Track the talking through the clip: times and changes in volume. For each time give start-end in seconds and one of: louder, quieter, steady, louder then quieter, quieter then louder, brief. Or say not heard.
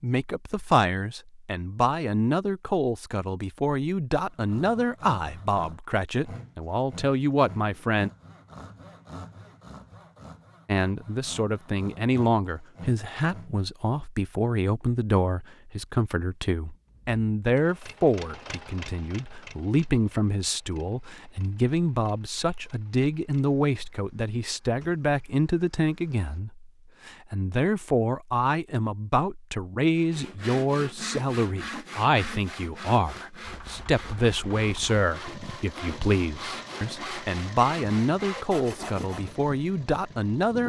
0.0-8.1 steady
10.7-40.6 steady.